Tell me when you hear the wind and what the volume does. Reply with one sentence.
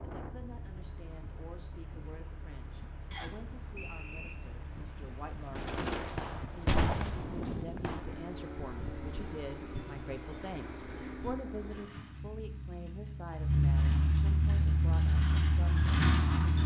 The wind can be heard from 0.0 to 11.3 s, getting louder then quieter.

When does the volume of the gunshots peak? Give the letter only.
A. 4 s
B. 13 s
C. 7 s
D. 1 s
C.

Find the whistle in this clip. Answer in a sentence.
The whistle can be heard from 3.1 to 4.3 s.